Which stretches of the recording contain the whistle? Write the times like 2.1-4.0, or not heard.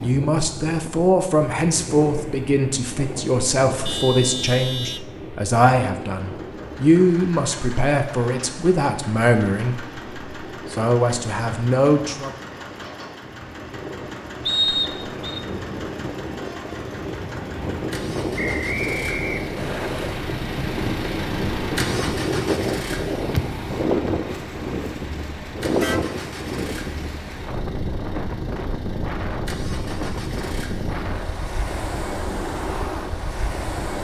14.4-15.4, 18.4-19.9.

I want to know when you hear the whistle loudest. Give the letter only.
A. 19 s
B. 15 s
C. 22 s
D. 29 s
B.